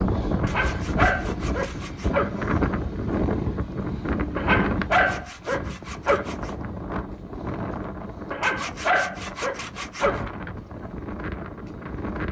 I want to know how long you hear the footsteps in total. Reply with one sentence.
You can't hear the footsteps here.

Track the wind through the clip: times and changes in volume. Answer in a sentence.
The wind can be heard from 0.0 to 12.2 s, getting quieter.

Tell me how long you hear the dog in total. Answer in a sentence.
The dog can be heard for 6 seconds in total.